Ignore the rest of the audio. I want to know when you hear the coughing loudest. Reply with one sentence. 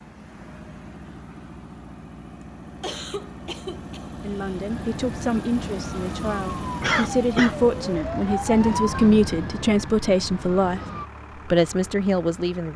The loudest moment of the coughing is at 7 seconds.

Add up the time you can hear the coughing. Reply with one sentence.
The coughing can be heard for 3 seconds in total.